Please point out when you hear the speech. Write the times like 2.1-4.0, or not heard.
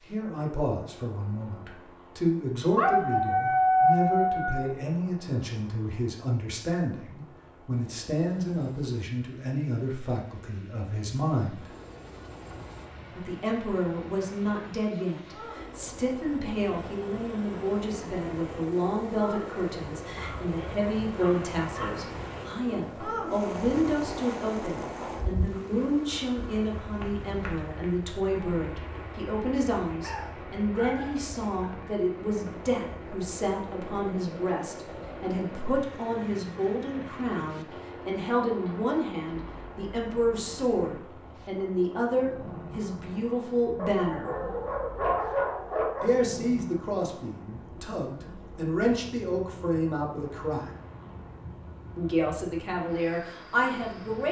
0.1-11.7, 13.2-44.4, 46.0-50.7, 52.0-54.2.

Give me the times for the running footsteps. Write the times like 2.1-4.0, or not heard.
not heard.